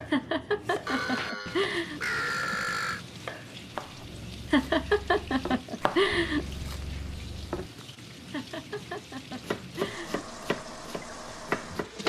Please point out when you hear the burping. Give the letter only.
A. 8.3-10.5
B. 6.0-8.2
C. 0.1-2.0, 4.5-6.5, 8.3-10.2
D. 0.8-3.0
D.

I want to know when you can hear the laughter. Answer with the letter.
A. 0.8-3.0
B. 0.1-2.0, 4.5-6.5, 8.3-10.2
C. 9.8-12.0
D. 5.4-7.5
B.